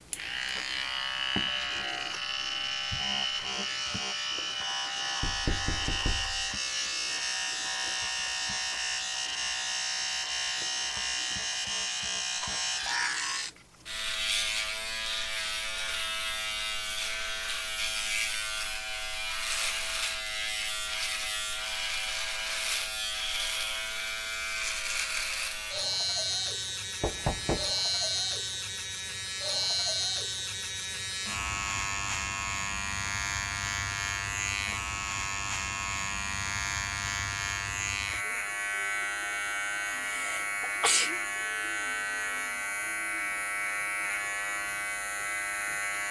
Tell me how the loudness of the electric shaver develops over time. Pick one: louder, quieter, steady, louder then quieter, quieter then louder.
steady.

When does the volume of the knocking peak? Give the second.
27 s.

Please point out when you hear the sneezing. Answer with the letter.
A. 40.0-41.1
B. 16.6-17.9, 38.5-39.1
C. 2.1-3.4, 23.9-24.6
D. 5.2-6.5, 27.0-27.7
A.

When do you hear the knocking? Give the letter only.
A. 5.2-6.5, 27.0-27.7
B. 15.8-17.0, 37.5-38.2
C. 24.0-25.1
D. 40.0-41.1
A.